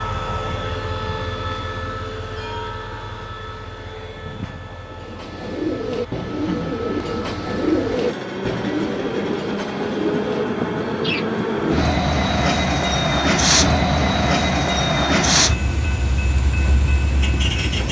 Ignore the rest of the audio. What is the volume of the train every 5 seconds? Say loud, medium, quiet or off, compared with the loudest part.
medium, medium, loud, loud.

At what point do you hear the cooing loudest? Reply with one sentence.
The volume of the cooing peaks at 8 seconds.